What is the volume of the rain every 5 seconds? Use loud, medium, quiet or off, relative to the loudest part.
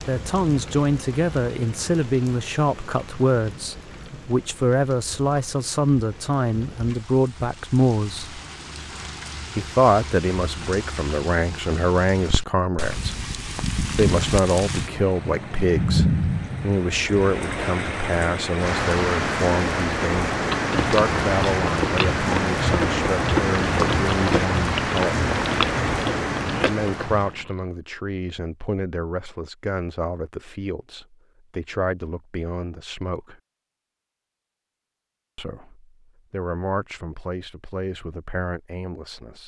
quiet, quiet, medium, loud, loud, loud, off, off.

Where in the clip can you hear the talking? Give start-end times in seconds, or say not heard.
0.1-8.4, 9.6-25.2, 26.6-33.4, 35.4-39.4.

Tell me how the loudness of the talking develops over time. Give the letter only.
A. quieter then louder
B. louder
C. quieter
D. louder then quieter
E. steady
C.